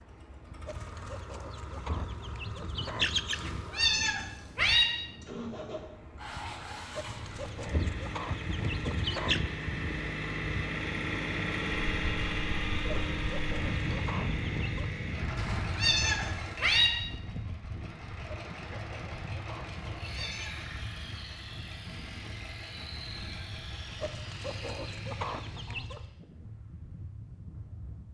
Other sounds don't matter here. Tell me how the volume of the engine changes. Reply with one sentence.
The loudness of the engine goes up, then down.